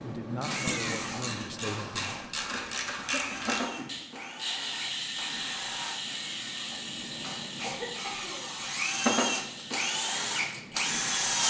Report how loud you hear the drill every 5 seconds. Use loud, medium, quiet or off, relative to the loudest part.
medium, medium, loud.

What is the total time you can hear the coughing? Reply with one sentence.
The coughing can be heard for 2 seconds in total.